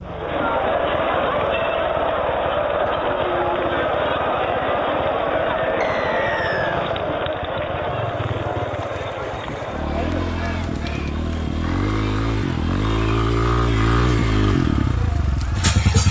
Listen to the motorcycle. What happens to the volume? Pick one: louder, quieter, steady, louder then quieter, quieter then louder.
louder.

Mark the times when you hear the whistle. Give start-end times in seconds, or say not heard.
5.8-6.8.